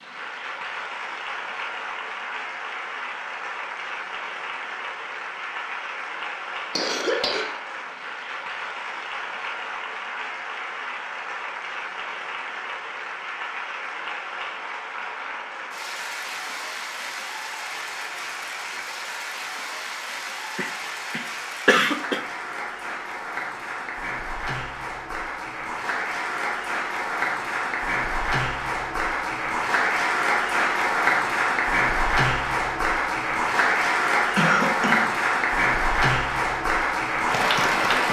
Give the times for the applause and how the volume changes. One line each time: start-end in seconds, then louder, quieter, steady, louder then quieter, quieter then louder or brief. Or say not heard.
0.0-38.0 louder.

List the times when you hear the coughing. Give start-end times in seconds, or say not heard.
6.8-7.5, 20.6-22.2, 34.4-35.1.